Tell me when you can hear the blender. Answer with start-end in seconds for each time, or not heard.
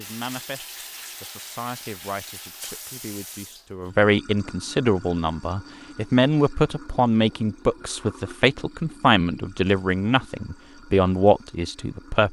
not heard.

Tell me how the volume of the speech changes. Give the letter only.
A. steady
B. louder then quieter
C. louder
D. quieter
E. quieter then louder
C.